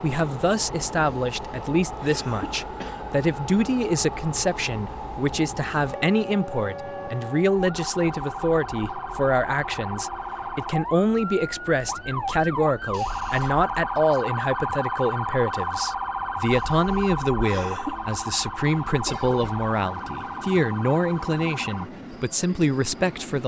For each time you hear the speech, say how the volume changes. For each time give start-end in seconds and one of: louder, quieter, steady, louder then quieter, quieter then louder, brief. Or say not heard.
0.0-23.4 steady.